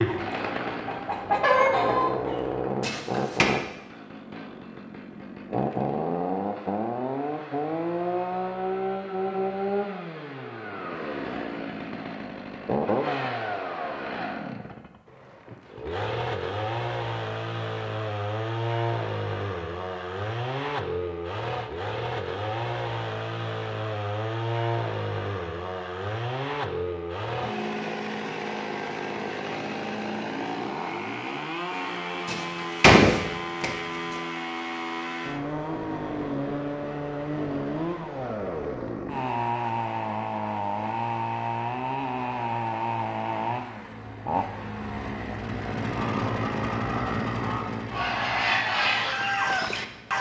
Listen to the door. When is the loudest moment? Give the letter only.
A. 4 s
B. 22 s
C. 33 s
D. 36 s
C.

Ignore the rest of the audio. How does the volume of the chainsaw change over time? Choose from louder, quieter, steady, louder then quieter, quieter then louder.
steady.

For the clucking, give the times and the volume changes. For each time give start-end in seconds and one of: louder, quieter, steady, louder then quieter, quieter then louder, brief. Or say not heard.
0.0-2.6 brief
46.0-50.1 louder.